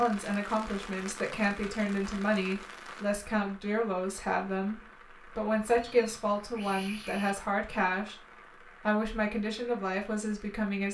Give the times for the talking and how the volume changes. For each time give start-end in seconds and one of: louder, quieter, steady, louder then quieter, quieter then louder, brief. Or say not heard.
0.0-10.8 steady.